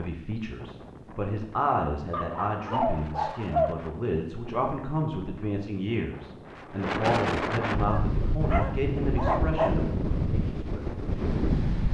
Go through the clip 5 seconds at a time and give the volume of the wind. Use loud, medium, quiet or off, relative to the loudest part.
quiet, loud, loud.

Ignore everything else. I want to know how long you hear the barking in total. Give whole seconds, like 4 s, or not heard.
4 s.